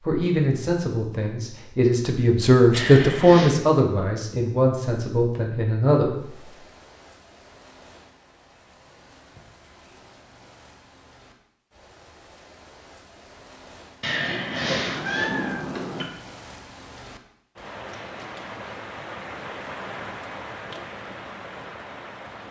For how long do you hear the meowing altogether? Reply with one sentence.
The meowing can be heard for 3 seconds in total.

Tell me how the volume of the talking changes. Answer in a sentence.
The loudness of the talking goes up, then down.